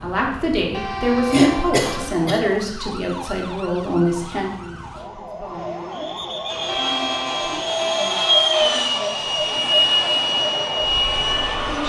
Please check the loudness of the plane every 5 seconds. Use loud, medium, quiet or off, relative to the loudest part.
off, loud, loud.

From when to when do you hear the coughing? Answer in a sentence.
The coughing can be heard from 1.3 to 2.4 s.